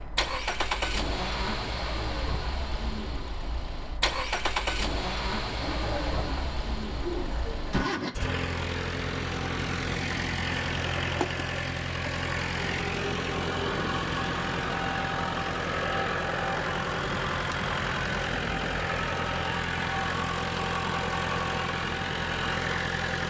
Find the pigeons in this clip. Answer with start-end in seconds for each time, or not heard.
5.6-7.8.